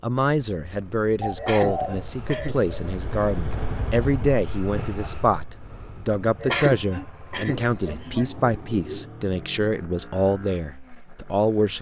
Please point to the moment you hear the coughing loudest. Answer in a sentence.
The loudest moment of the coughing is at 7 seconds.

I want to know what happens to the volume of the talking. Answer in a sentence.
The loudness of the talking stays about the same.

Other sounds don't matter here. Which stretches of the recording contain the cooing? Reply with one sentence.
The cooing can be heard from 1.2 to 3.0 s and from 7.3 to 9.1 s.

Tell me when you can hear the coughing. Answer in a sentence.
The coughing can be heard from 1.4 to 2.8 s and from 6.4 to 8.2 s.